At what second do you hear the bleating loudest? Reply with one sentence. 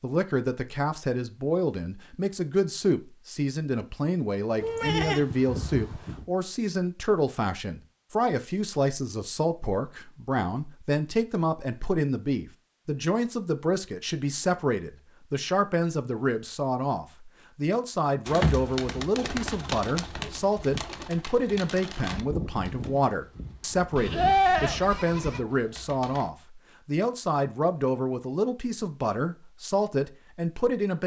The loudest moment of the bleating is at 24 seconds.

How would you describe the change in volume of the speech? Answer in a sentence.
The volume of the speech stays about the same.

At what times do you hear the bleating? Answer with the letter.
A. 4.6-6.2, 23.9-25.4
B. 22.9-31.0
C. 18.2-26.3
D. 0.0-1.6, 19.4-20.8
A.